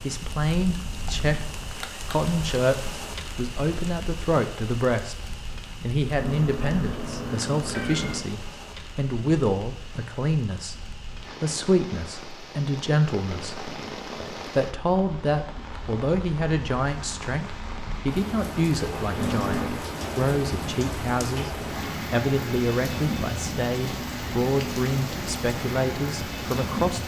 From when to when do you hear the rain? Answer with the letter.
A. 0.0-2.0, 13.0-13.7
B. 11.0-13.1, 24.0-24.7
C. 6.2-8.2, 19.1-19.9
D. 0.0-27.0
D.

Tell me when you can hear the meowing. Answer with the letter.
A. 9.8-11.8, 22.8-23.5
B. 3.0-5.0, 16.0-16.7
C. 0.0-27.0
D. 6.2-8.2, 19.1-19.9
D.